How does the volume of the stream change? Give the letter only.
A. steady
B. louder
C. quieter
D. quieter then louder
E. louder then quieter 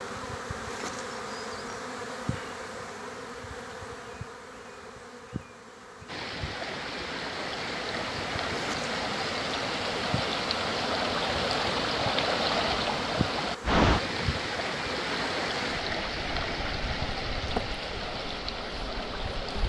E.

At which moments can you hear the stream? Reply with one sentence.
You can hear the stream from 6.0 to 19.6 s.